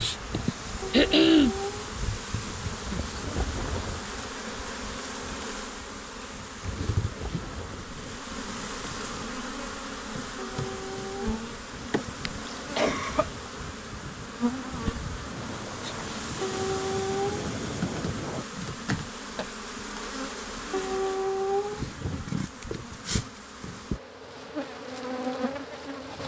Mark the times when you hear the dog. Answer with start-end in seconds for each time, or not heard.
0.8-1.9, 10.3-11.3, 16.4-17.5, 20.7-21.9.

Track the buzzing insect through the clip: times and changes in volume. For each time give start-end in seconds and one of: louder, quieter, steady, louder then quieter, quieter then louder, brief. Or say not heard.
0.0-26.2 steady.